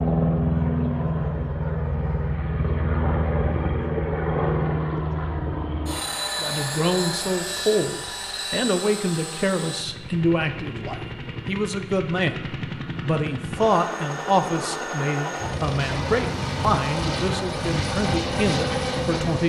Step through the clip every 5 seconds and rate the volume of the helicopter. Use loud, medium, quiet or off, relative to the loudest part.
loud, medium, medium, loud.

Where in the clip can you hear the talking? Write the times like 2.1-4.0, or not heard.
6.4-12.3, 13.0-19.4.